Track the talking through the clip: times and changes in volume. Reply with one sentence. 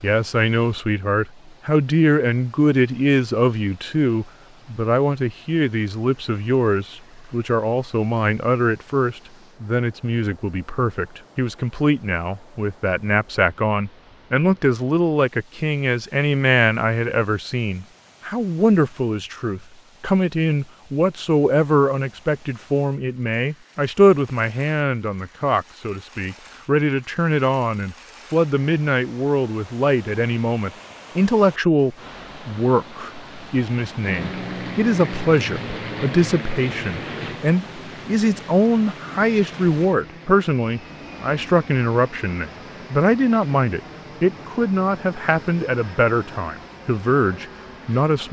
You can hear the talking from 0.0 to 48.2 s, at a steady volume.